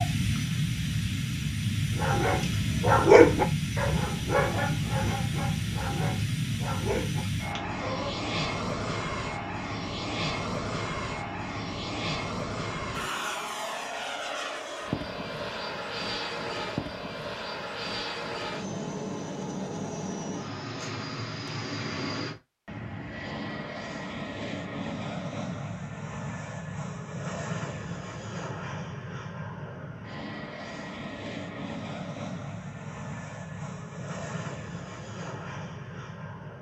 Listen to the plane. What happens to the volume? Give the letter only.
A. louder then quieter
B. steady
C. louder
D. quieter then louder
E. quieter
E.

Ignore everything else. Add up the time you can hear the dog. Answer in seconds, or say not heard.
6 s.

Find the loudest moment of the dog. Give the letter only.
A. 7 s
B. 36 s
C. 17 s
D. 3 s
D.